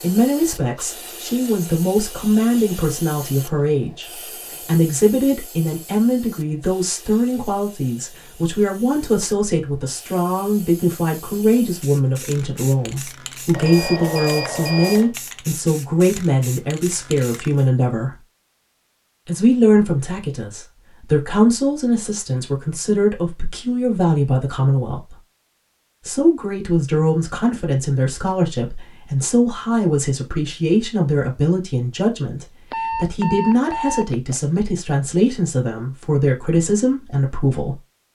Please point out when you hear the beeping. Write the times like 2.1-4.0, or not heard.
13.5-15.1, 32.7-34.6.